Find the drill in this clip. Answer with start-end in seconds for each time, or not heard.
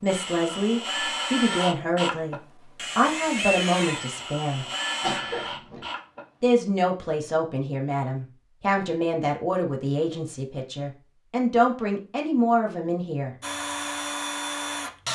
0.0-6.2, 13.4-15.0.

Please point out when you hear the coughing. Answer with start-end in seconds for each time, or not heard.
5.0-5.8.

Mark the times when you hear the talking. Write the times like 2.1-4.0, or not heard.
0.0-4.7, 6.4-13.3.